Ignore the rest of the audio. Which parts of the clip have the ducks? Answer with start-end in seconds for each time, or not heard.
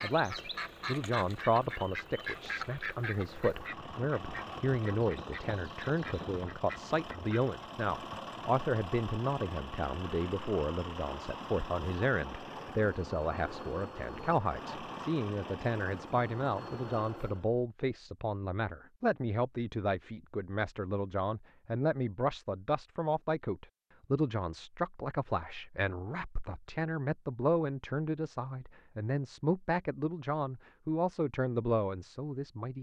0.0-7.5.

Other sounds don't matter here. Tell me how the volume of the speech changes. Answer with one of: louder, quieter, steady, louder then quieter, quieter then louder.
steady.